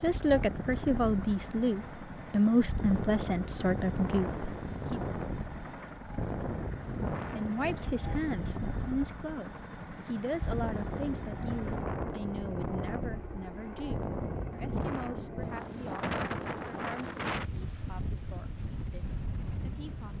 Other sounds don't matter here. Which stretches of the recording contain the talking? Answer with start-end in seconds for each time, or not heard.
0.0-5.0, 7.3-20.1.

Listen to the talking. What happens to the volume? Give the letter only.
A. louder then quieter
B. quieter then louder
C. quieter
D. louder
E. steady
C.